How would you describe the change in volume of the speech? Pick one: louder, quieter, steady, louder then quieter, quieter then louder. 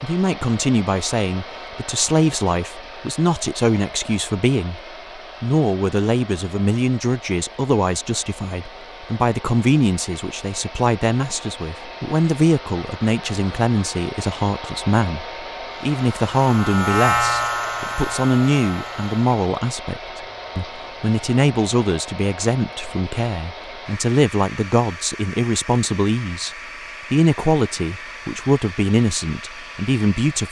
steady.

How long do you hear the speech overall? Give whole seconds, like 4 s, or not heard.
30 s.